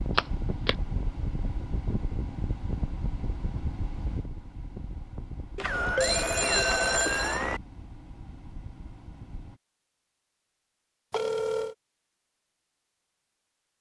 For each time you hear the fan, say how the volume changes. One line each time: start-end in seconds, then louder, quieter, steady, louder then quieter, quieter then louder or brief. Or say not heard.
0.0-9.6 quieter.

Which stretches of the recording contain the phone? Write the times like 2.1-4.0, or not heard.
0.1-0.8, 5.5-7.6, 11.1-11.8.